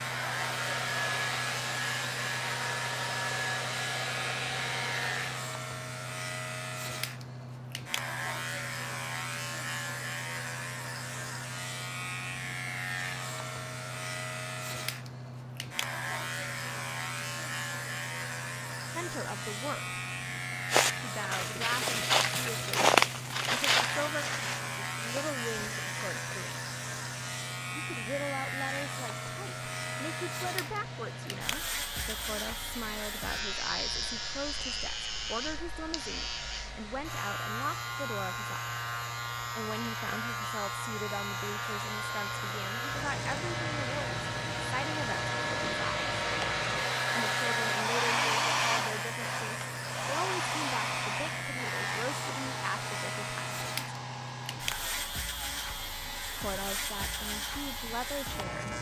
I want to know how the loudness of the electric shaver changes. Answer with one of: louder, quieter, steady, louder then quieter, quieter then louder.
steady.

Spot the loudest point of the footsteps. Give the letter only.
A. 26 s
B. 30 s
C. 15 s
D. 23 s
D.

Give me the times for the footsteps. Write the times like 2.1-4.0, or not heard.
20.7-27.2.